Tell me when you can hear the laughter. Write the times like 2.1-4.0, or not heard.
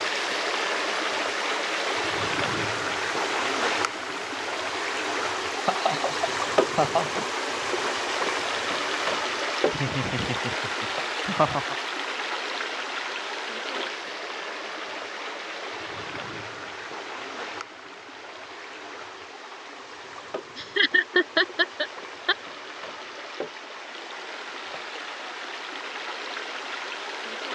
5.7-7.2, 9.7-11.8, 20.6-22.4.